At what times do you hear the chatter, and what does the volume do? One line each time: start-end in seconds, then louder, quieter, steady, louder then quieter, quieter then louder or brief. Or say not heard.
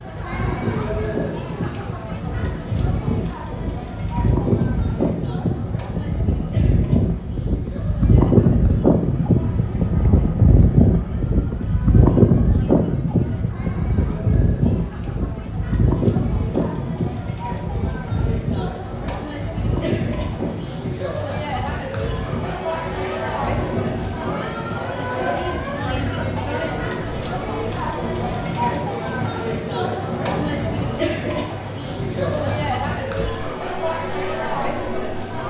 0.0-35.4 quieter then louder.